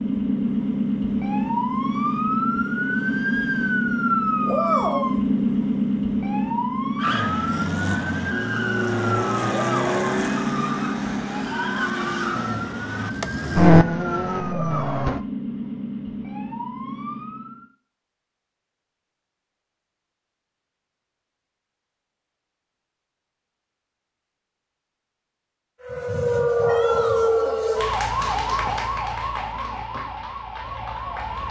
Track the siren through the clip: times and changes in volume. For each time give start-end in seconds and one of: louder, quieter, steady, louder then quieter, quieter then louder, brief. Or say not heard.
0.0-17.6 quieter
25.8-31.4 quieter.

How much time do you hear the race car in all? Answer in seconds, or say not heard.
8 s.